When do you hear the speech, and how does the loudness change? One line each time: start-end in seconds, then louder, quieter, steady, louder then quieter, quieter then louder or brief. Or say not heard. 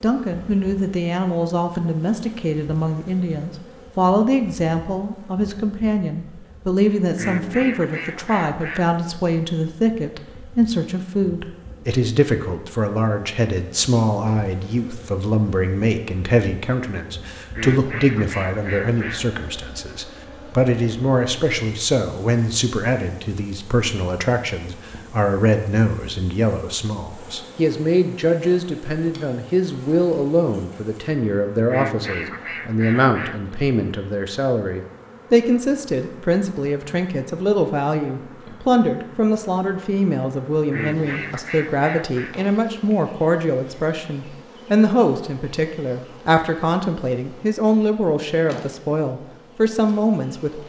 0.0-50.6 steady.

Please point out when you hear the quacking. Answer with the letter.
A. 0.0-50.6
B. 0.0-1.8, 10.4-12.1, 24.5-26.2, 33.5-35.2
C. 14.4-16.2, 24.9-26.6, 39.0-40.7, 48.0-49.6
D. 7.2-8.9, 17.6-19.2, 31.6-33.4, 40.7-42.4
D.